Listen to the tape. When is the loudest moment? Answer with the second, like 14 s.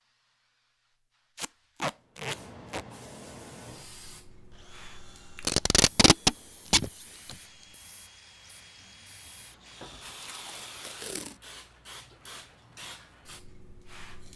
6 s.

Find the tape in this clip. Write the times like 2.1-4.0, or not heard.
1.4-2.9, 5.4-7.3, 10.2-11.3.